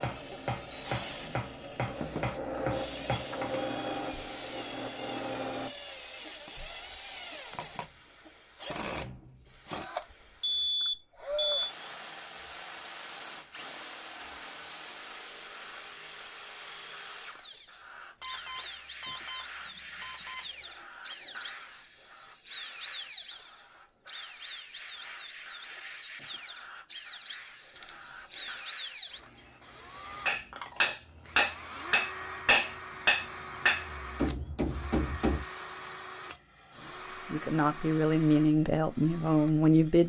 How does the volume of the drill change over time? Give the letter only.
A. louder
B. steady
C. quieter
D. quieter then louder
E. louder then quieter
B.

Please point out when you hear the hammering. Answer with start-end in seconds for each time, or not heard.
0.0-3.6, 30.2-35.5.